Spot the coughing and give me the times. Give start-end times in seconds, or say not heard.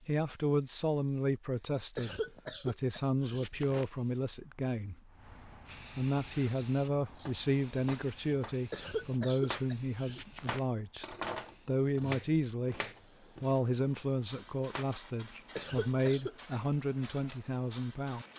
1.9-3.9, 8.7-10.7, 15.6-16.4.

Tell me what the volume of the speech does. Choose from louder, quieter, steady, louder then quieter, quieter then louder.
steady.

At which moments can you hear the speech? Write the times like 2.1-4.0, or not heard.
0.1-5.0, 6.0-12.8, 13.4-18.2.